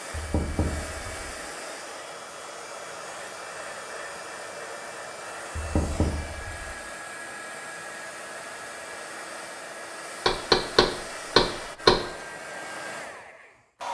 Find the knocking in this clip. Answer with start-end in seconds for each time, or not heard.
0.1-1.3, 5.5-6.8, 10.2-12.1.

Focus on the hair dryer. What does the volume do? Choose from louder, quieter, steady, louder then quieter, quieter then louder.
steady.